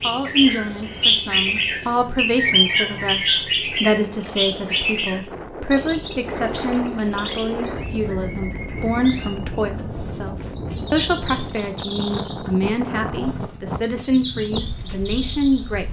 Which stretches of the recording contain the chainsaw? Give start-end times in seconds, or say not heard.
not heard.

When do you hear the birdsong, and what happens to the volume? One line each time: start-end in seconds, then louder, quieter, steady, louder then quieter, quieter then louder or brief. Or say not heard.
0.0-15.8 quieter.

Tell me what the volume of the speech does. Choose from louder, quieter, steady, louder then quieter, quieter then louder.
steady.